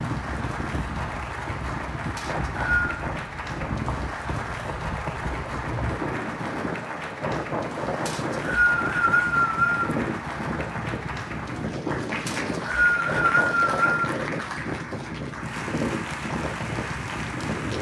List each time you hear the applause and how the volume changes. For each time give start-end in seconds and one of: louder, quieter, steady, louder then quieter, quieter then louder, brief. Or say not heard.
0.0-17.7 steady.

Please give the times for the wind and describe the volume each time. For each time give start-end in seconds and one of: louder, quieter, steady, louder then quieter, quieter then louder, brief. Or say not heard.
0.0-17.7 steady.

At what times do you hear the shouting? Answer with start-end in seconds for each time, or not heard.
not heard.